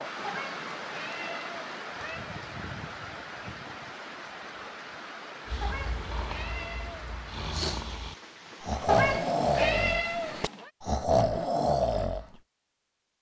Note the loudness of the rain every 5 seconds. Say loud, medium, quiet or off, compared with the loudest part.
loud, medium, off.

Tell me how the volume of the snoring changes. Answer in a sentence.
The volume of the snoring goes up.